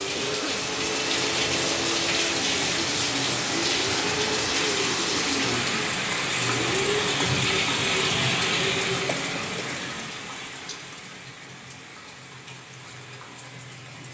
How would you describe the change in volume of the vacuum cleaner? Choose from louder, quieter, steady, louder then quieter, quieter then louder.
steady.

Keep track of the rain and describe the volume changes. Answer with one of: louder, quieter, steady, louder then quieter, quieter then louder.
quieter.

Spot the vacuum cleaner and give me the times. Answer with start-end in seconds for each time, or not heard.
0.0-7.0.